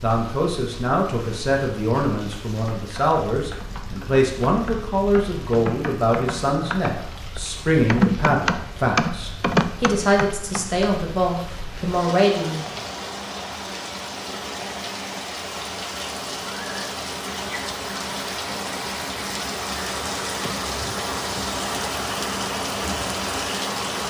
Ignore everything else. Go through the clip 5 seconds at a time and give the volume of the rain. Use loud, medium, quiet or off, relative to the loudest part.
quiet, quiet, medium, loud, loud.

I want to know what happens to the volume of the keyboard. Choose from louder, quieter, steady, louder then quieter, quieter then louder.
louder.